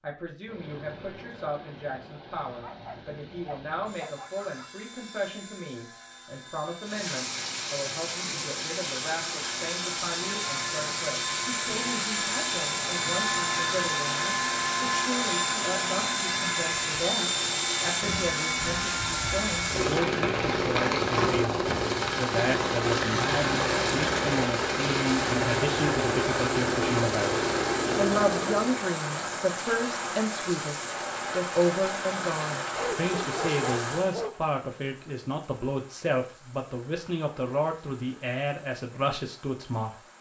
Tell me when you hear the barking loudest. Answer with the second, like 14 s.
34 s.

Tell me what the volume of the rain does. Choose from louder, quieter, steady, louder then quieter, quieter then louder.
quieter.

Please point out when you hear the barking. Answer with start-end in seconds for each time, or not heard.
2.6-4.7, 32.8-34.4.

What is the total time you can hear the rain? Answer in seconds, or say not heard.
33 s.